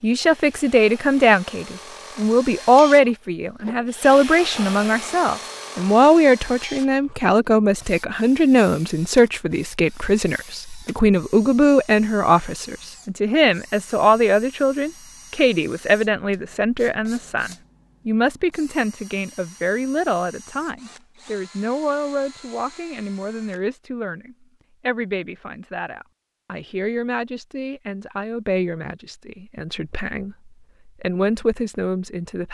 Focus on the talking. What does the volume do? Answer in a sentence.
The volume of the talking goes down.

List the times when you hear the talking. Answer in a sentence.
You can hear the talking from 0.0 to 32.4 s.